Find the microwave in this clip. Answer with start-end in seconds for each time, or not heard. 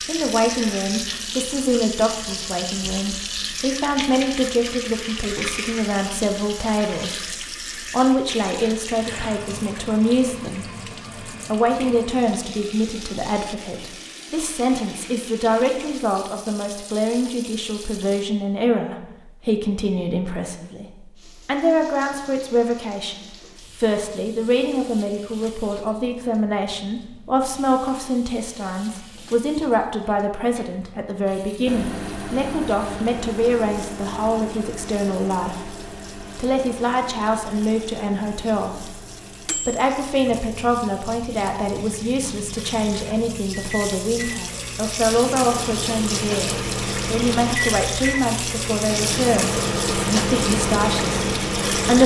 31.6-52.0.